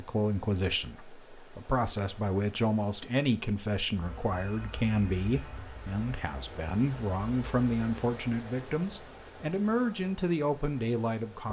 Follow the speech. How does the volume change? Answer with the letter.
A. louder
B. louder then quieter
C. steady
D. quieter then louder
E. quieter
C.